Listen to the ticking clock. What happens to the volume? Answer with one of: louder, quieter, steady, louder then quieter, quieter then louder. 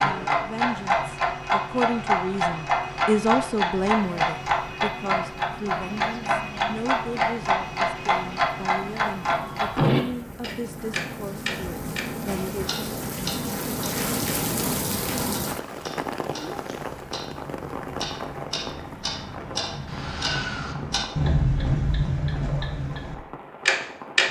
quieter then louder.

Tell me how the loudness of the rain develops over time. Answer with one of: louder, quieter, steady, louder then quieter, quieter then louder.
louder then quieter.